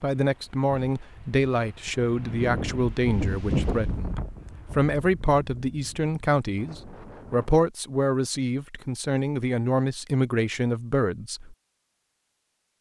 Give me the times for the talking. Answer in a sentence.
You can hear the talking from 0.0 to 11.6 s.